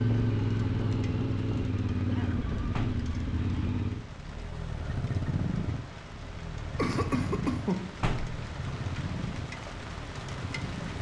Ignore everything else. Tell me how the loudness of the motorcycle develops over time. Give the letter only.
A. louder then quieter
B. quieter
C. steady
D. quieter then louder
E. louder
B.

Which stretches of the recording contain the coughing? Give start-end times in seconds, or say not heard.
2.0-2.5, 6.8-8.0.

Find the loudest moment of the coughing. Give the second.
8 s.